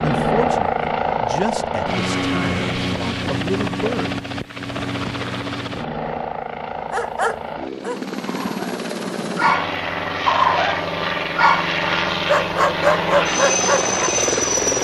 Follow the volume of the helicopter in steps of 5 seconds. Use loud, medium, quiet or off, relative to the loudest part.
loud, medium, loud.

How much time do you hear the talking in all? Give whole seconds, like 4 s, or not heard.
4 s.